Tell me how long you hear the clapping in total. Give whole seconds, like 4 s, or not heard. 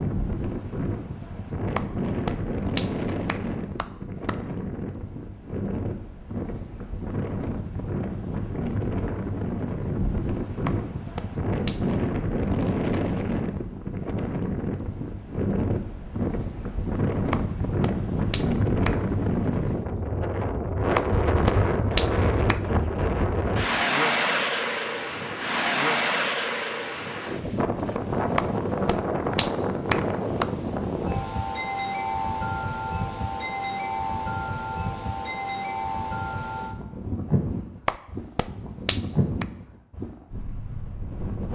11 s.